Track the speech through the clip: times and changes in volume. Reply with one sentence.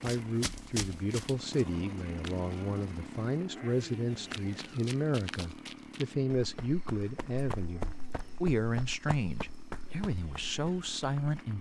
The speech can be heard from 0.0 to 11.5 s, at a steady volume.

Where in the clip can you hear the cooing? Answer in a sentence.
You can't hear the cooing here.